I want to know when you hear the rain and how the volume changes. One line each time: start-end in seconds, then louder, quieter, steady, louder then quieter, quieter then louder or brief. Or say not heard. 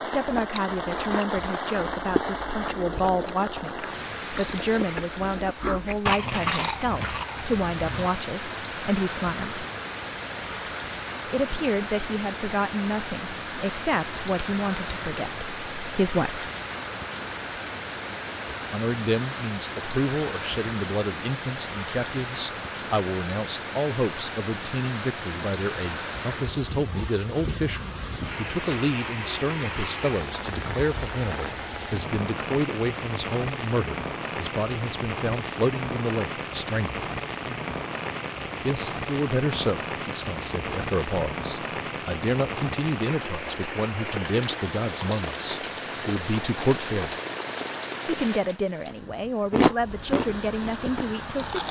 0.0-51.6 steady.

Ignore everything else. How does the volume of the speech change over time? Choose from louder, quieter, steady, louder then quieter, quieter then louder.
steady.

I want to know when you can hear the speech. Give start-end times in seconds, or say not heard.
0.0-9.7, 11.2-16.4, 18.5-37.0, 38.6-47.1, 48.0-51.6.